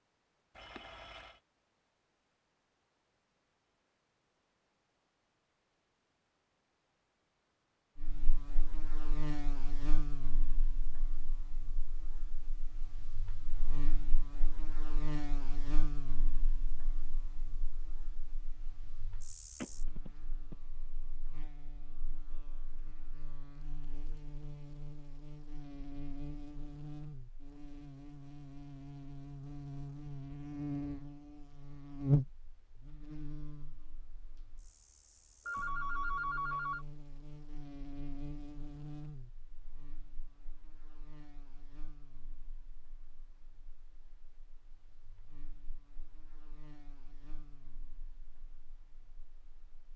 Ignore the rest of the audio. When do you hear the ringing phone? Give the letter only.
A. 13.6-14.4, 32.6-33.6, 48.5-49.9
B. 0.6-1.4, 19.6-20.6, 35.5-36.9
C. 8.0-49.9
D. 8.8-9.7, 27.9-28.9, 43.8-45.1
B.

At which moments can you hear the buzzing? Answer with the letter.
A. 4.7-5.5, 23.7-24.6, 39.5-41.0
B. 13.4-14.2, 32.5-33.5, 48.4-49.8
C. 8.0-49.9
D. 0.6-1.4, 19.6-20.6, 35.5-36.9
C.